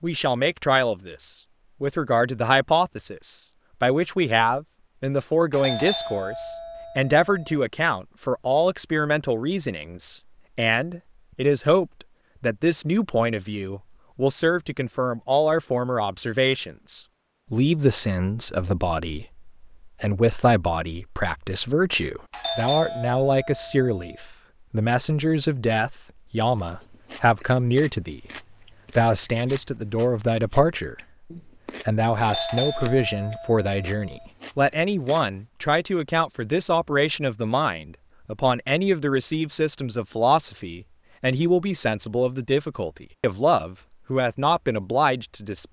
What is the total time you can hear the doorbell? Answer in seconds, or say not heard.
6 s.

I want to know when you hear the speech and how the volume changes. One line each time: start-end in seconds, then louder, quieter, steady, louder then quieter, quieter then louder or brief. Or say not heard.
0.0-28.2 steady
28.9-30.9 brief
31.9-45.6 steady.